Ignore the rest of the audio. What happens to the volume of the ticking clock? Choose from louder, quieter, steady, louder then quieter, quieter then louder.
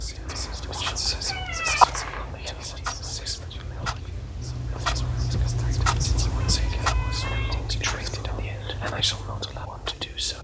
louder then quieter.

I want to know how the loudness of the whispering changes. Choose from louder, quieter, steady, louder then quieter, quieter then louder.
quieter then louder.